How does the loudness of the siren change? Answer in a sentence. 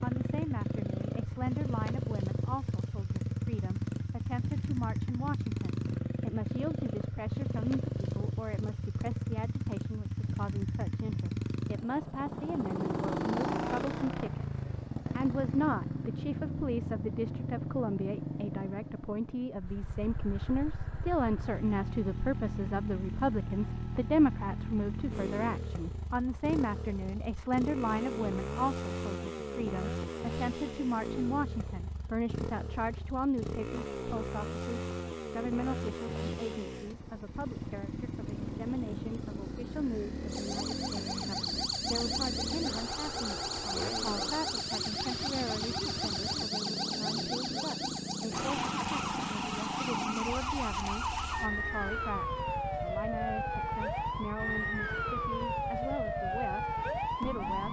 The volume of the siren stays about the same.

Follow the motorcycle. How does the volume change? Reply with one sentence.
The volume of the motorcycle goes down.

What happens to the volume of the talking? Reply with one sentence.
The volume of the talking goes up, then down.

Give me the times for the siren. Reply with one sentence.
The siren can be heard from 40.2 to 57.6 s.